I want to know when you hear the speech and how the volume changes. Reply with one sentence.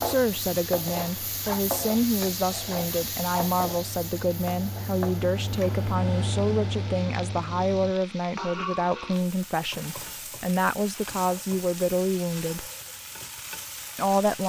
The speech can be heard from 0.0 to 12.7 s, at a steady volume; and briefly from 13.9 to 14.4 s.